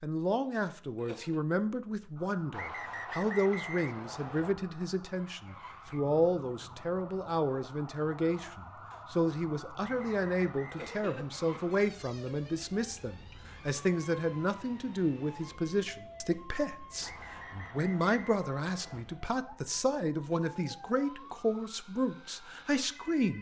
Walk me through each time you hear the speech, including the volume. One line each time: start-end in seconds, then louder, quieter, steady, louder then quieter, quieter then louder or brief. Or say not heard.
0.0-23.3 steady.